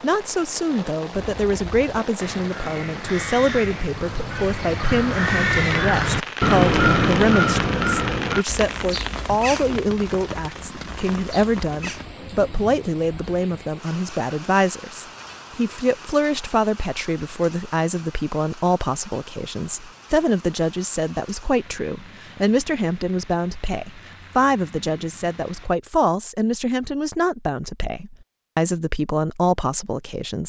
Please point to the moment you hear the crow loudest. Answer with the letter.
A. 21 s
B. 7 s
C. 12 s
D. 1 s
B.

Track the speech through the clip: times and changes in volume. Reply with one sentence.
The speech can be heard from 0.0 to 30.4 s, at a steady volume.